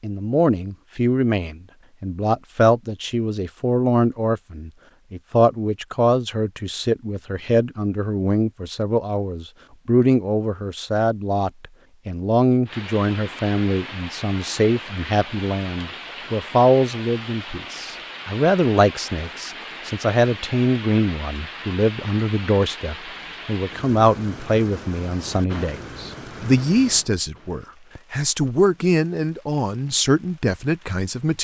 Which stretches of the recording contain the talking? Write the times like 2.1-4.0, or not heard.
0.0-31.3.